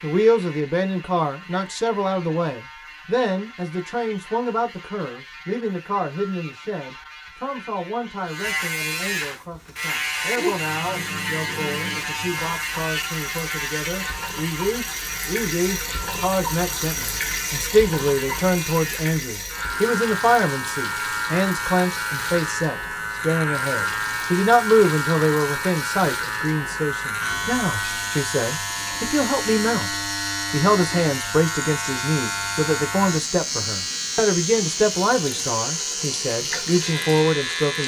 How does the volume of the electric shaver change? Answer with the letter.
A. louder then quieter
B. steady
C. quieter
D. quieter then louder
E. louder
E.